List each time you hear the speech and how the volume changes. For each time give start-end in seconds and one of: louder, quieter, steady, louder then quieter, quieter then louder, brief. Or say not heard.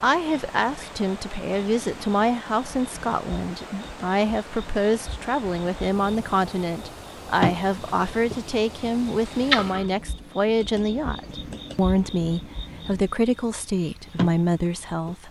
0.0-15.2 steady.